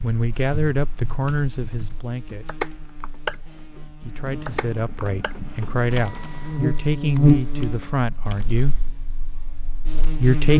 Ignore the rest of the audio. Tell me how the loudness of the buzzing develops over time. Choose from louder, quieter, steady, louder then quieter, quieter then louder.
louder then quieter.